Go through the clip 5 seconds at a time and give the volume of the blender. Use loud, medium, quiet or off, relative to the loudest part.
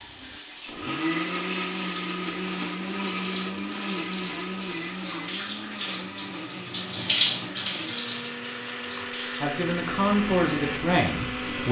loud, medium, loud.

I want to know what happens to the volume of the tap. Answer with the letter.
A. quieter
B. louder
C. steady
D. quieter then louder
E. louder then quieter
E.